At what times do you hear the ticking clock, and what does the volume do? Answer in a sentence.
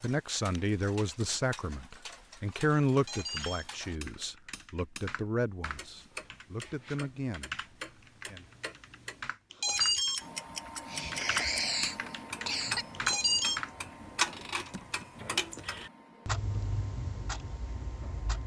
You can hear the ticking clock from 0.0 to 18.4 s, getting louder.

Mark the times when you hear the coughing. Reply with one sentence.
You can hear the coughing from 10.8 to 12.8 s.